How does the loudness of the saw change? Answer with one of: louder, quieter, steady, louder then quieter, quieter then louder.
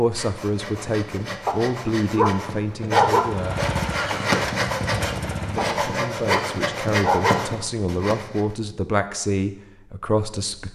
louder.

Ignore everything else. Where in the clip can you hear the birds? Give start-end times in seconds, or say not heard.
not heard.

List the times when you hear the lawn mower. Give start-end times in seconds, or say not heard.
3.1-5.8.